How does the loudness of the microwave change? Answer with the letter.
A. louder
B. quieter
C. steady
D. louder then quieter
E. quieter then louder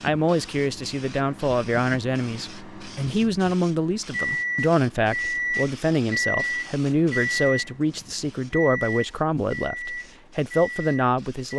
D.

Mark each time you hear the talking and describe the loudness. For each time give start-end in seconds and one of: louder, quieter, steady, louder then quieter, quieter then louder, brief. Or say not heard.
0.0-11.5 steady.